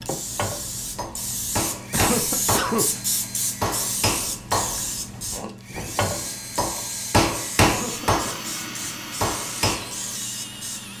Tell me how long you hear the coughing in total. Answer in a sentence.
The coughing can be heard for 2 seconds in total.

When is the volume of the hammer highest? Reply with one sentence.
The loudest moment of the hammer is at 8 seconds.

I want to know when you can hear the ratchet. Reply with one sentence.
You can't hear the ratchet here.